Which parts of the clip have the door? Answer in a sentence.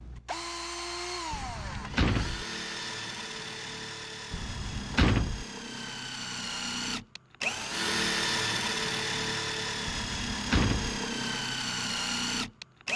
You can hear the door from 1.3 to 2.5 s, from 4.3 to 5.5 s and from 9.8 to 11.0 s.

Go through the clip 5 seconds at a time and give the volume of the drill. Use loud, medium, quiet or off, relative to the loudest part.
medium, loud, loud.